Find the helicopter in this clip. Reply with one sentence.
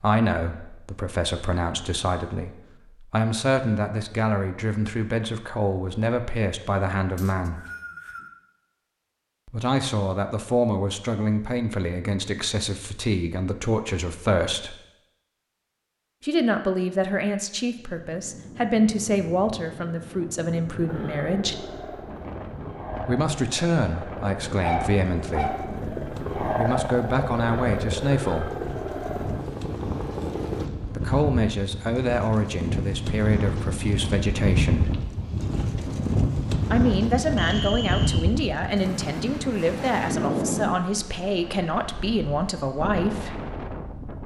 You can hear the helicopter from 20.9 to 30.6 s.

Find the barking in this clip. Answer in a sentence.
You can hear the barking from 24.6 to 25.6 s.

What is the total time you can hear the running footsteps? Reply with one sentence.
The running footsteps can't be heard in this clip.